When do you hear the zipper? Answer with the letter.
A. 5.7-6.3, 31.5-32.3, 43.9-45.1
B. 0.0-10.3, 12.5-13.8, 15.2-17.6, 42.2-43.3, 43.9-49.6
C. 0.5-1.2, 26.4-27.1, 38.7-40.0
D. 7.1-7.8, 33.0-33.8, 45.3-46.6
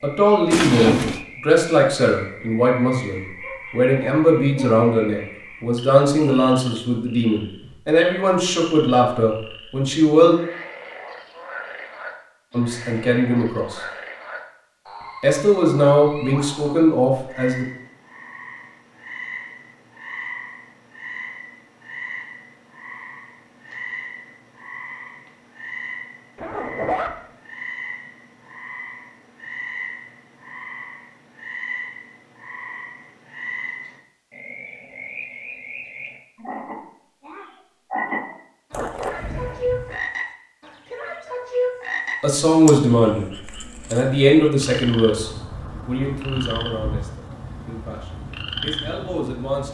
C.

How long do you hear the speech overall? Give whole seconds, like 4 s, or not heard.
21 s.